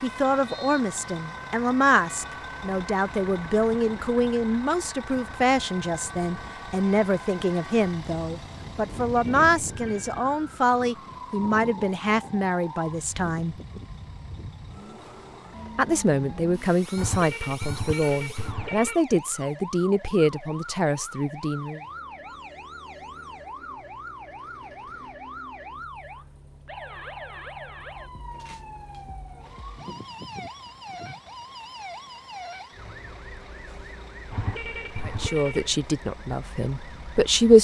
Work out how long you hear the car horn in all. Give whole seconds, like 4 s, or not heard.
5 s.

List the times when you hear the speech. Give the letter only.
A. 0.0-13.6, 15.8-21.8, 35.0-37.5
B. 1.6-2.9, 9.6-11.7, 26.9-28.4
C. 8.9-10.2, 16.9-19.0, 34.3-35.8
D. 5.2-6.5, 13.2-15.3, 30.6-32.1
A.